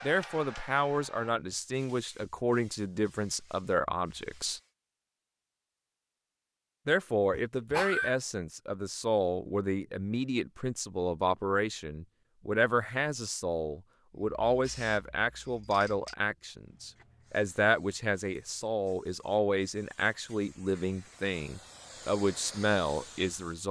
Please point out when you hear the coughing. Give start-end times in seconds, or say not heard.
7.3-8.2.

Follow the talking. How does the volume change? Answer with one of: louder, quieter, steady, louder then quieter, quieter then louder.
steady.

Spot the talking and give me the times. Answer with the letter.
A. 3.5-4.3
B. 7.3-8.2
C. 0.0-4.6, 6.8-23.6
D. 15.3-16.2
C.